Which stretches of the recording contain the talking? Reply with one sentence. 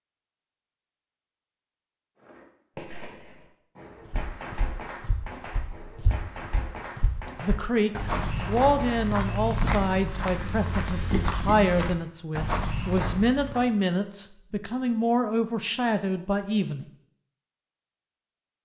The talking can be heard from 7.4 to 16.9 s.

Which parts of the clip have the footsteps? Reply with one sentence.
You can hear the footsteps from 4.0 to 13.7 s.